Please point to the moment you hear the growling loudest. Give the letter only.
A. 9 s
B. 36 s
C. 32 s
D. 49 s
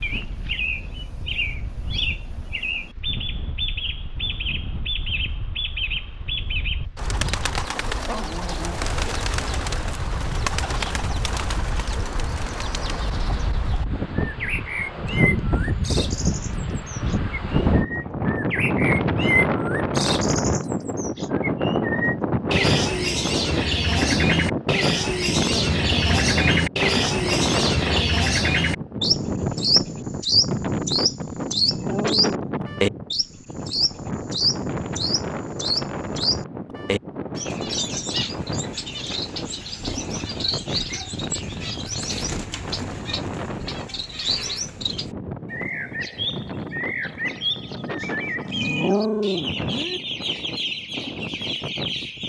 D.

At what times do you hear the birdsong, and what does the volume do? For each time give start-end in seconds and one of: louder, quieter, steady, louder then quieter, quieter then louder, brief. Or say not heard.
0.0-52.2 louder then quieter.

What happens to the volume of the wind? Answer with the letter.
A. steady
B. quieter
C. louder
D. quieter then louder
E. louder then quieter
E.